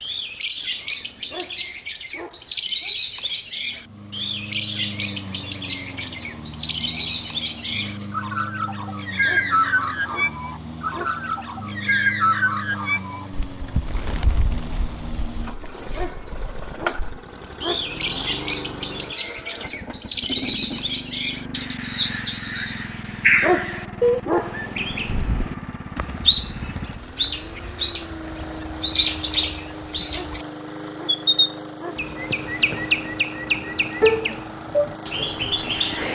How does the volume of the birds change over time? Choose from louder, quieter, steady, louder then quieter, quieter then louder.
steady.